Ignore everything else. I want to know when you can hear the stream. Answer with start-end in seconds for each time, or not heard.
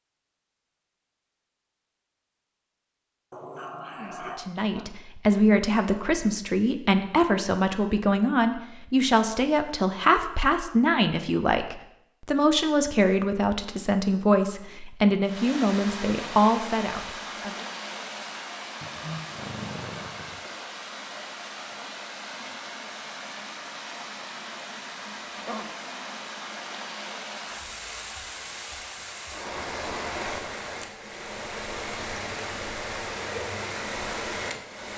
15.2-34.9.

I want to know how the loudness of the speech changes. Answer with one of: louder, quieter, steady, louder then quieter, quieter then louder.
steady.